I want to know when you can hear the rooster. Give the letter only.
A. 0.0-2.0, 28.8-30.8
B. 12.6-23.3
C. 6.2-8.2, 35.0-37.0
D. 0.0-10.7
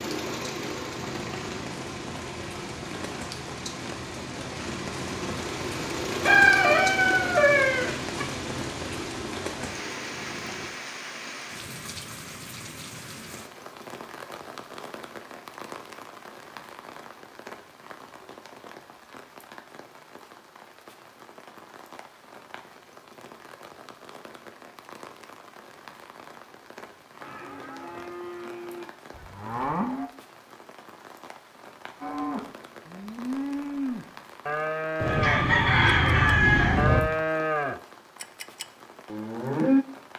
C.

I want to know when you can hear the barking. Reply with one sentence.
You can't hear the barking here.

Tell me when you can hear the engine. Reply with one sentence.
You can hear the engine from 0.0 to 10.7 s.